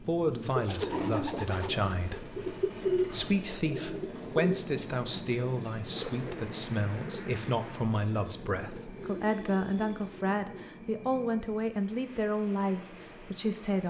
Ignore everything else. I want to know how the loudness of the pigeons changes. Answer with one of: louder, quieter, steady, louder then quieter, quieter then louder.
quieter.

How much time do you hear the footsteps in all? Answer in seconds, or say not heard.
not heard.